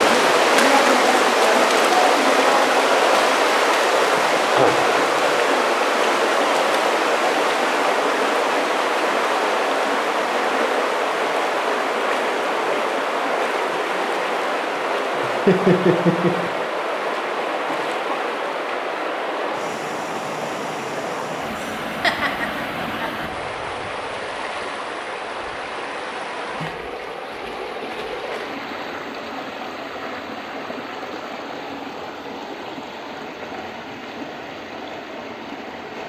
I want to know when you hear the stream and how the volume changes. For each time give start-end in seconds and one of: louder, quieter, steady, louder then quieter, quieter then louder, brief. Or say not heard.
0.0-36.0 quieter.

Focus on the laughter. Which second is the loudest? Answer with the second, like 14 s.
16 s.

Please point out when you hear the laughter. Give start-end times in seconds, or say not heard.
15.2-16.5, 22.0-23.2.